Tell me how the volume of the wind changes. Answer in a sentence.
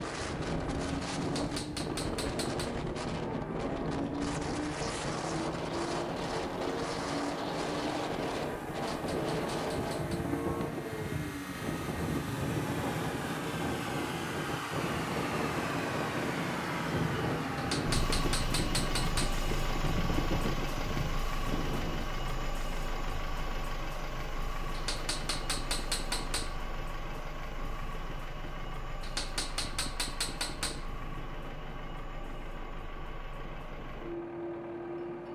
The loudness of the wind goes down.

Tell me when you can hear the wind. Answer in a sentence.
The wind can be heard from 0.0 to 35.3 s.